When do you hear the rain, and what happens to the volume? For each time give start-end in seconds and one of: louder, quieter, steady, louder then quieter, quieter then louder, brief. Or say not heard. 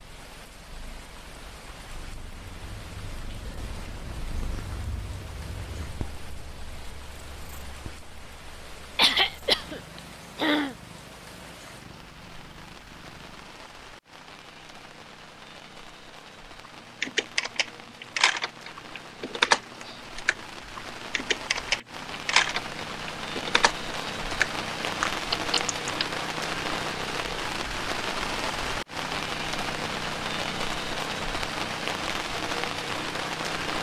0.0-33.7 louder.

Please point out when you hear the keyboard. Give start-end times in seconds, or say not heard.
17.0-26.1.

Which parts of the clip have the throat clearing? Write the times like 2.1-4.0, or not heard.
8.9-10.8.